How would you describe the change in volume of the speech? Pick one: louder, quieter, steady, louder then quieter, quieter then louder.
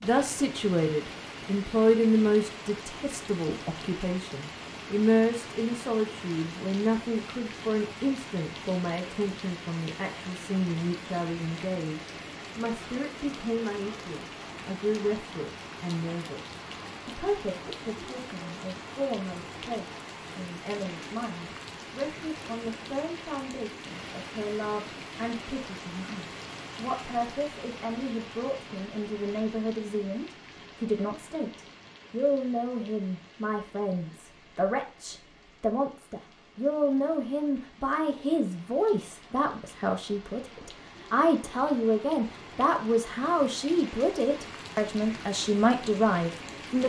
quieter then louder.